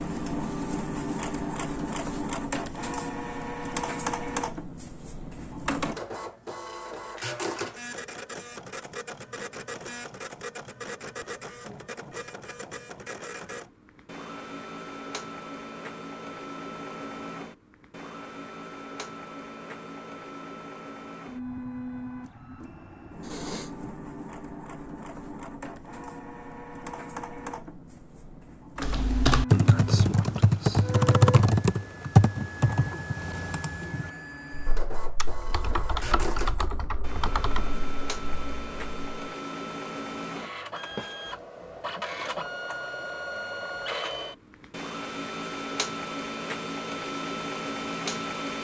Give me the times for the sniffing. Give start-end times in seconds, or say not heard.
23.2-23.9.